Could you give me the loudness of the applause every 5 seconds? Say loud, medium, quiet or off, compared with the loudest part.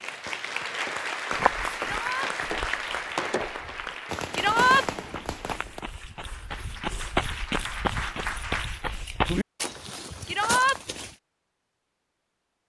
loud, medium, off.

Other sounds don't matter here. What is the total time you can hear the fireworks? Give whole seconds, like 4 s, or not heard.
6 s.